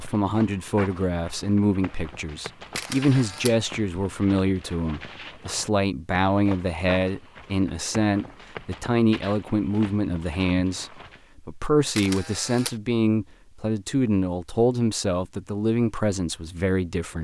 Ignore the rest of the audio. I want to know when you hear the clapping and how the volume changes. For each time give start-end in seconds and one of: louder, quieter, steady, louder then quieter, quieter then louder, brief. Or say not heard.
not heard.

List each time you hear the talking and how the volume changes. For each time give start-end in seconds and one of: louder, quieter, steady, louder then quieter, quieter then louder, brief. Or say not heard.
0.0-17.1 steady.